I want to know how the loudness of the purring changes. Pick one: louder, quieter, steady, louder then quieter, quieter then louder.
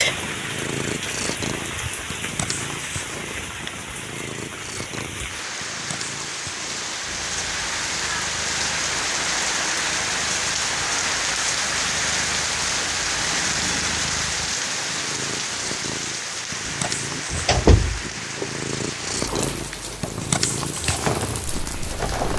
quieter then louder.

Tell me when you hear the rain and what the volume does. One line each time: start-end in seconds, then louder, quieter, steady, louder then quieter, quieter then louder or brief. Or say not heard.
0.0-22.3 louder then quieter.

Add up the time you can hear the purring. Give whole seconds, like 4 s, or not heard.
22 s.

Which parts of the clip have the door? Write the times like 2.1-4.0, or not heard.
16.6-18.4.